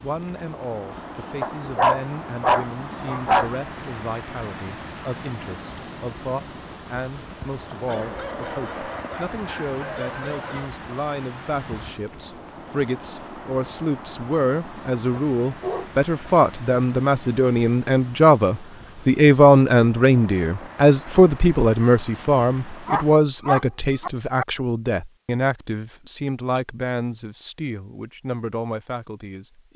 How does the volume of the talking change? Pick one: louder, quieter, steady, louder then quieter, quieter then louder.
louder then quieter.